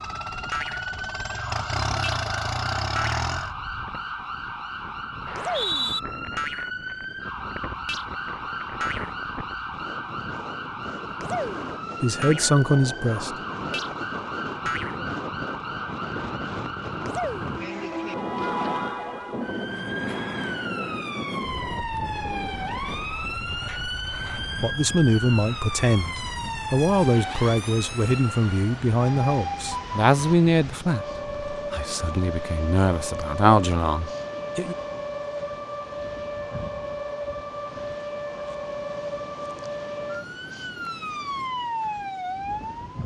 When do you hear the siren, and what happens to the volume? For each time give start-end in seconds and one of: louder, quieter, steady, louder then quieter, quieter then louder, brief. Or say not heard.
0.0-43.0 steady.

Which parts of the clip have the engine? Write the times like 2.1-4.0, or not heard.
0.0-3.5.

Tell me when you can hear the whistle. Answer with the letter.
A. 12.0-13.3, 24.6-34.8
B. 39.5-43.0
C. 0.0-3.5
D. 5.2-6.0
D.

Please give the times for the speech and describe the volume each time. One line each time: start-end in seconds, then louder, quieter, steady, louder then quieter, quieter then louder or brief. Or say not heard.
12.0-13.3 brief
24.6-34.8 quieter then louder.